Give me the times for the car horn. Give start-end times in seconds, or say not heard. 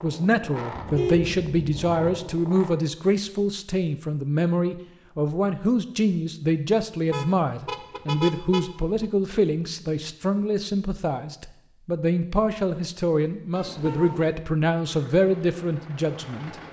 0.7-2.2, 7.1-9.1, 13.6-14.4.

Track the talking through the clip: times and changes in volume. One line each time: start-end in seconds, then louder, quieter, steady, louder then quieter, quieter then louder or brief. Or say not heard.
0.0-16.6 steady.